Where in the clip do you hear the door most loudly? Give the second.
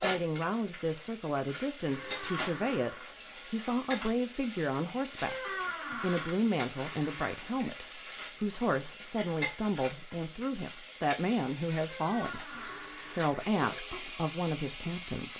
6 s.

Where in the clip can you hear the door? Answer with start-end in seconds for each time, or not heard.
2.0-3.0, 5.2-6.3, 11.8-12.9.